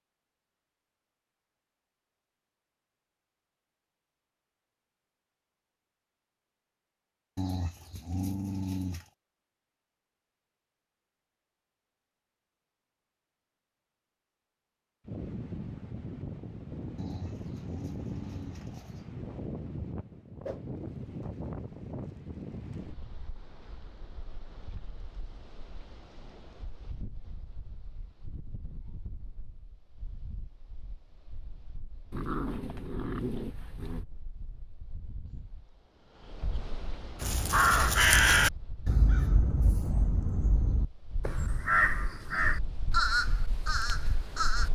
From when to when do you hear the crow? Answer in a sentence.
You can hear the crow from 37.2 to 44.6 s.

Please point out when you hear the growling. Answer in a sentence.
The growling can be heard from 7.3 to 9.1 s, from 16.9 to 19.1 s and from 32.1 to 34.0 s.